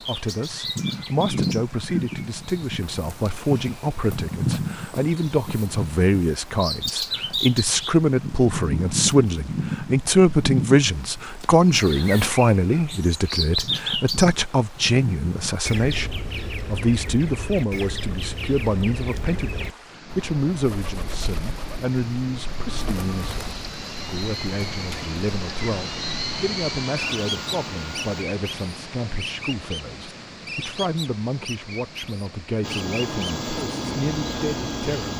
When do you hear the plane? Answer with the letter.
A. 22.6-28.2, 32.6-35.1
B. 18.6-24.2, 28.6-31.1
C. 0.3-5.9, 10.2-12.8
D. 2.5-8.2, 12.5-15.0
A.